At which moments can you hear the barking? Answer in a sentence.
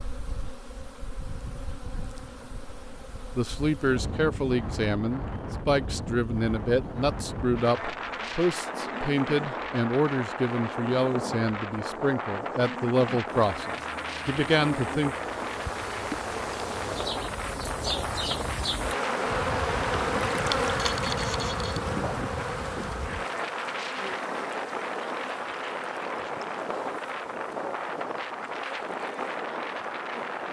The barking can't be heard in this clip.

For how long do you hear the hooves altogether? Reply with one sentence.
You can't hear the hooves here.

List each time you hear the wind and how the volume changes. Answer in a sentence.
You can hear the wind from 0.0 to 30.4 s, getting louder.